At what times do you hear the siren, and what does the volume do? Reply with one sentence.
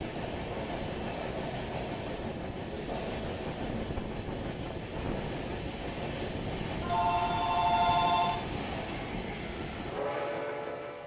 You can't hear the siren here.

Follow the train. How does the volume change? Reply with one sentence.
The loudness of the train stays about the same.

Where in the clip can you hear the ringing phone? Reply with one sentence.
You can hear the ringing phone from 6.8 to 8.4 s.